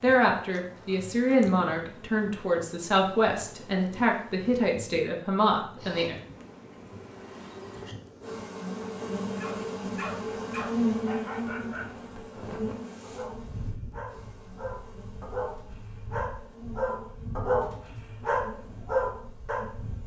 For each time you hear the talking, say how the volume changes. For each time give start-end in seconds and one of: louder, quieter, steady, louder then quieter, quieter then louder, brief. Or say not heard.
0.0-6.2 steady.